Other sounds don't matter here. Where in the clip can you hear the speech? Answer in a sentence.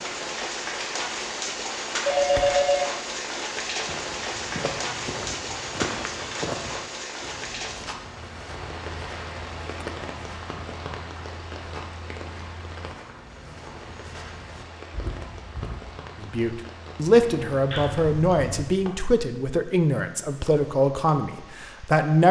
The speech can be heard from 16.2 to 22.2 s.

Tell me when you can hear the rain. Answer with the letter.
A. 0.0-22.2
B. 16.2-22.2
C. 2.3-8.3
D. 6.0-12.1
A.